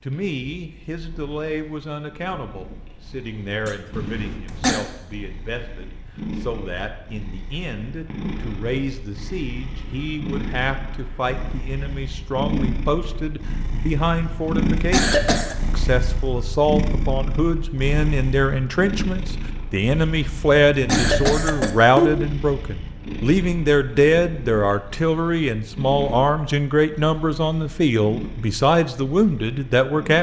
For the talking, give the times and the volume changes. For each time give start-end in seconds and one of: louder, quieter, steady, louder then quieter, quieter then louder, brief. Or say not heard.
0.0-30.1 louder.